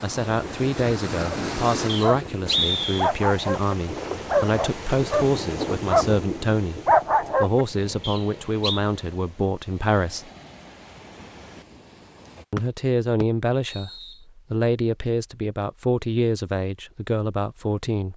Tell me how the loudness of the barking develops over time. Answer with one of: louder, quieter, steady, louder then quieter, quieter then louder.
louder.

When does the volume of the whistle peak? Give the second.
3 s.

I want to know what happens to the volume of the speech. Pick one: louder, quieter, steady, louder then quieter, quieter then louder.
steady.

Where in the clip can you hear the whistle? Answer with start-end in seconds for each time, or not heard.
1.9-3.1, 8.0-8.8, 13.2-14.2.